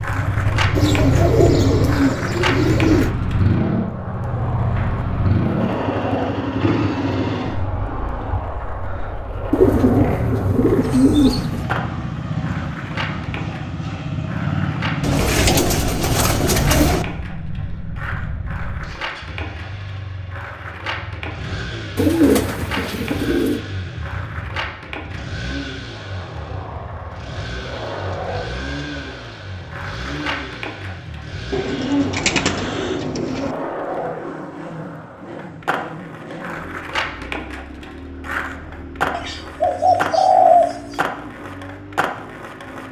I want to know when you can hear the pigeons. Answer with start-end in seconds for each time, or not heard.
0.8-3.1, 9.5-11.7, 15.0-17.1, 21.9-23.6, 31.5-33.5, 39.1-40.8.